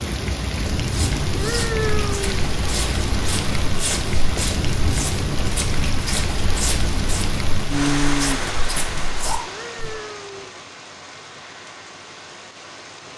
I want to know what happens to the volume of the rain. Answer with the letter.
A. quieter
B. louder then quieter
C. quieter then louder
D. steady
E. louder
A.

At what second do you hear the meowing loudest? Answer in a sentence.
The loudest moment of the meowing is at 2 seconds.